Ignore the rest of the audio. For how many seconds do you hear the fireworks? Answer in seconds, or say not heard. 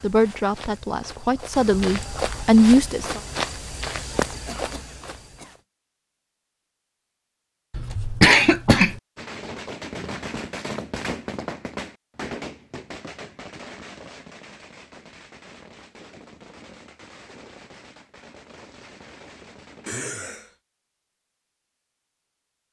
11 s.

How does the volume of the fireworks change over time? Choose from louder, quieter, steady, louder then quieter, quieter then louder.
quieter.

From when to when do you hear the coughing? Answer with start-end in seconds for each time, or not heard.
4.5-5.5, 7.7-9.0, 19.9-20.5.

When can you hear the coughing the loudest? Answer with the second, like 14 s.
8 s.